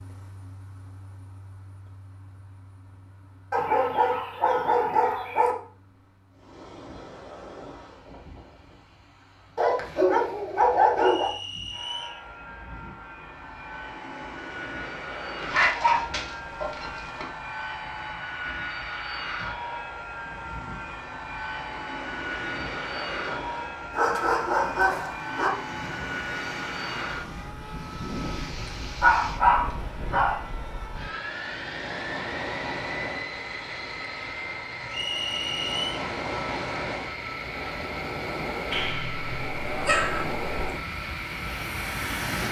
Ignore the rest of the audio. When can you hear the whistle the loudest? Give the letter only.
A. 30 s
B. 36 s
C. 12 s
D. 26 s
B.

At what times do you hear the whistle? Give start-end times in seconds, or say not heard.
10.9-12.2, 34.9-36.0.